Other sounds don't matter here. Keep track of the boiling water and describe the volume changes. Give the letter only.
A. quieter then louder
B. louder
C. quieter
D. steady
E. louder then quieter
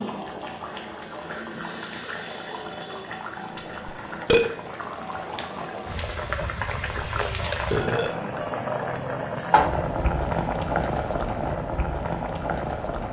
B.